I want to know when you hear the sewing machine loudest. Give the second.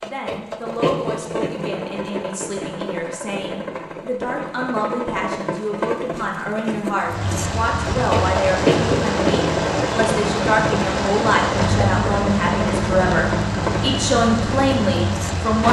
9 s.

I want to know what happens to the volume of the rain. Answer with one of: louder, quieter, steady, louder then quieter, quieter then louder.
steady.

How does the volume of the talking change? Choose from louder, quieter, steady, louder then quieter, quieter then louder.
louder.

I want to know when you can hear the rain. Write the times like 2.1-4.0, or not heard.
7.0-15.6.